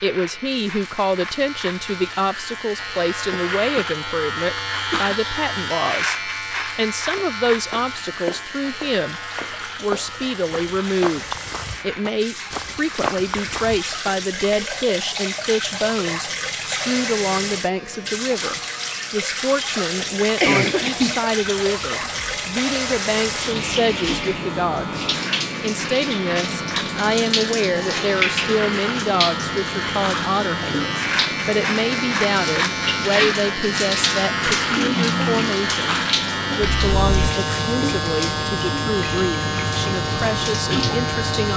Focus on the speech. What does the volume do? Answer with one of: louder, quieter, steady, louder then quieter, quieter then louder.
steady.